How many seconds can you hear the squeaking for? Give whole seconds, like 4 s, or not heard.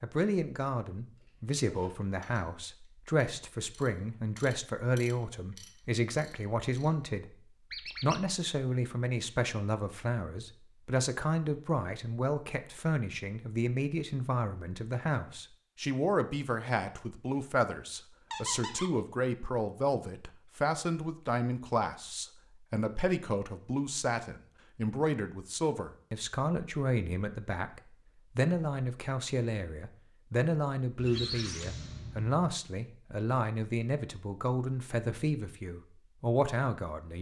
3 s.